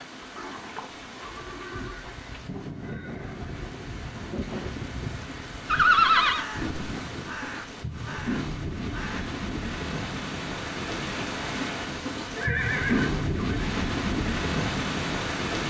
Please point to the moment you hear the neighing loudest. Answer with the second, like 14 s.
6 s.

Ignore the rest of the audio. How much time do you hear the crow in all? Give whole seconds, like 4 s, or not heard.
8 s.